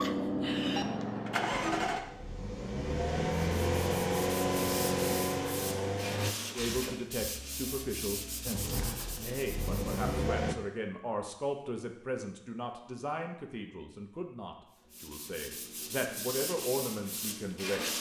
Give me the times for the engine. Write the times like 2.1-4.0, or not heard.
0.0-6.3, 8.4-10.6.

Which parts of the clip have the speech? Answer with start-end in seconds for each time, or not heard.
6.5-17.9.